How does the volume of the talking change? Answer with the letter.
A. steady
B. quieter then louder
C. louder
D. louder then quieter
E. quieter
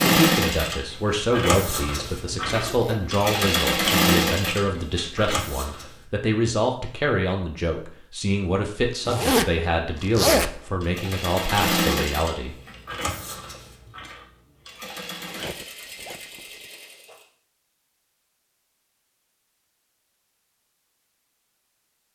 A.